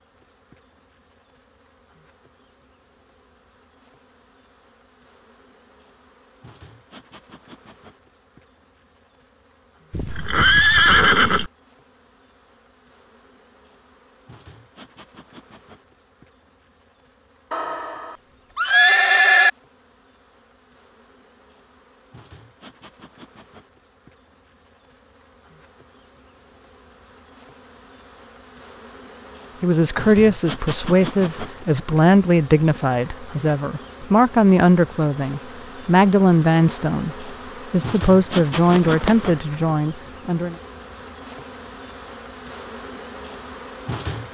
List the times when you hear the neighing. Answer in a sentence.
You can hear the neighing from 9.9 to 11.5 s, from 17.5 to 19.5 s and from 38.3 to 39.1 s.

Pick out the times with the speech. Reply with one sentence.
You can hear the speech from 29.6 to 40.5 s.